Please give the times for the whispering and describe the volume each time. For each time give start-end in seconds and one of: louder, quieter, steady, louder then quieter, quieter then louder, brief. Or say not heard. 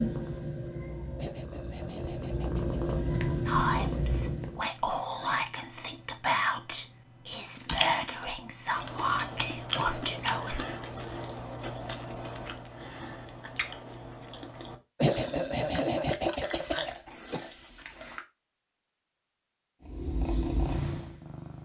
3.5-10.7 steady.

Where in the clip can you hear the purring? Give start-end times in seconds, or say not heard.
0.0-4.7, 19.9-21.6.